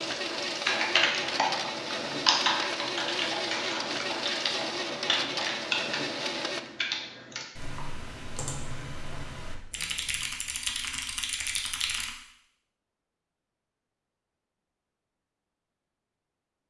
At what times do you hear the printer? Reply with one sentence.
You can hear the printer from 0.0 to 6.6 s.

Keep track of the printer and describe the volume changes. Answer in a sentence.
The volume of the printer stays about the same.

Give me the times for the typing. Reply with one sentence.
You can hear the typing from 0.7 to 12.1 s.